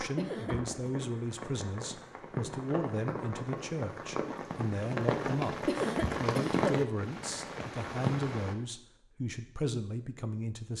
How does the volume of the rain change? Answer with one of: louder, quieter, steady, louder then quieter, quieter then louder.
louder.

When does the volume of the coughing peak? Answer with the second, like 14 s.
6 s.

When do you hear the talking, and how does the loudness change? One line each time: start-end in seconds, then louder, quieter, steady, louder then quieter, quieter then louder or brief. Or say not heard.
0.0-10.7 steady.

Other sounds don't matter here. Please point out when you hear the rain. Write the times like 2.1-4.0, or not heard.
0.0-8.6.